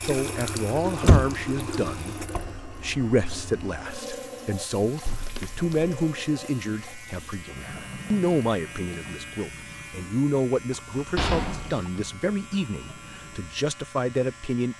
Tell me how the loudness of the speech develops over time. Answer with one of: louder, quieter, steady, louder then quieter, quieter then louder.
steady.